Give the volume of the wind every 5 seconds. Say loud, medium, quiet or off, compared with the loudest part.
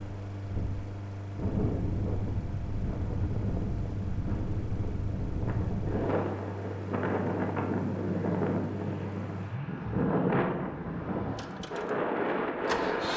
medium, loud, loud.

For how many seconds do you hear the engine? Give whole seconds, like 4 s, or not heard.
13 s.